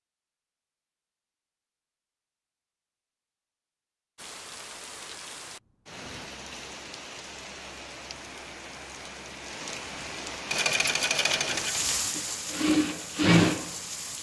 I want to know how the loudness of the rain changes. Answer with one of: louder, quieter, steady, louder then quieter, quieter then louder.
louder.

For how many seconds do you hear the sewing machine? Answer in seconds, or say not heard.
3 s.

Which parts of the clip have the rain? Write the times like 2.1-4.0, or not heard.
4.2-14.1.